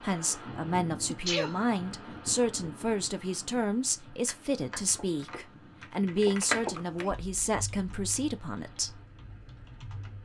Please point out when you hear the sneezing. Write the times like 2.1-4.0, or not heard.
1.1-1.6, 6.4-7.2.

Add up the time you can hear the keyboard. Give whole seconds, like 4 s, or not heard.
6 s.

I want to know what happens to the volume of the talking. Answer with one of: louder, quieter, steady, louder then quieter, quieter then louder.
steady.